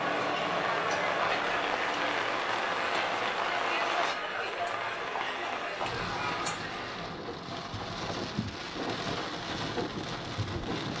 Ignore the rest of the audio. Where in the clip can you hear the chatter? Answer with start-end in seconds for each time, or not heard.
0.0-7.2.